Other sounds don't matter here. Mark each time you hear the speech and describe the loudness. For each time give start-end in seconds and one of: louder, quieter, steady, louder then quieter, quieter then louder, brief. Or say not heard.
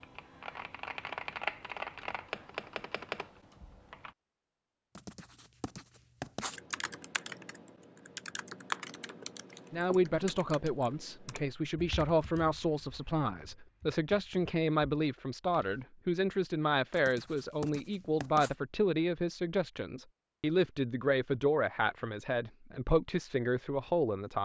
9.7-24.4 steady.